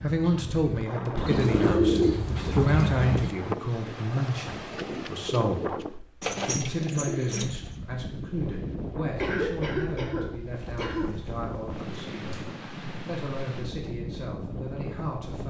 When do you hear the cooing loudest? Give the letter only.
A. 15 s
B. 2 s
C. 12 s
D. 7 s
B.